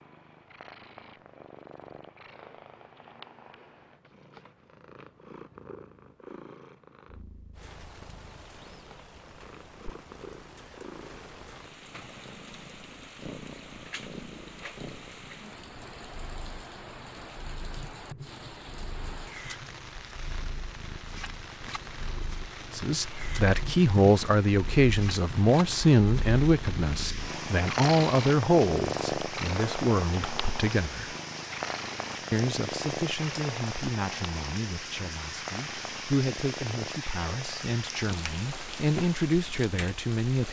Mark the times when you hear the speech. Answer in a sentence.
The speech can be heard from 22.7 to 31.1 s and from 32.3 to 40.4 s.